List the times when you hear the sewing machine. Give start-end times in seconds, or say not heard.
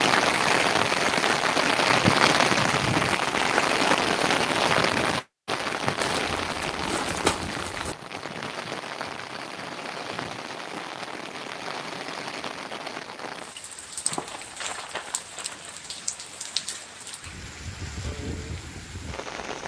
not heard.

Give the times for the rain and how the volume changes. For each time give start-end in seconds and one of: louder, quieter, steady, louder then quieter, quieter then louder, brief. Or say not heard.
0.0-19.6 quieter.